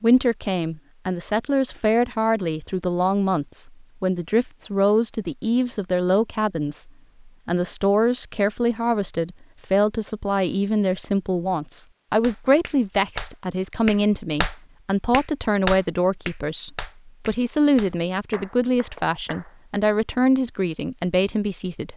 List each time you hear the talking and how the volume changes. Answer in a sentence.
The talking can be heard from 0.0 to 21.9 s, at a steady volume.